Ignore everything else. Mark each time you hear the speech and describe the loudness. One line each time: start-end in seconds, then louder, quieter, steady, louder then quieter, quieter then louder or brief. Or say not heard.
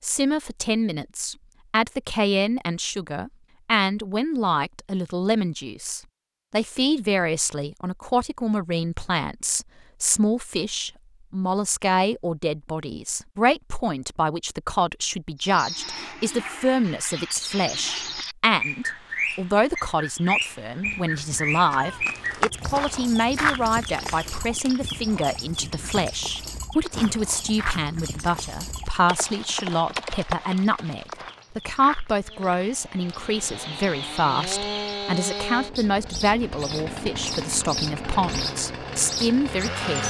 0.0-40.0 steady.